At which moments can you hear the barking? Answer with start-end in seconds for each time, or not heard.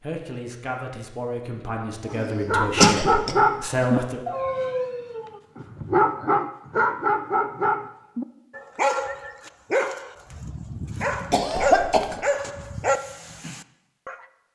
2.1-14.2.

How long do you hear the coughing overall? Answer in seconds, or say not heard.
3 s.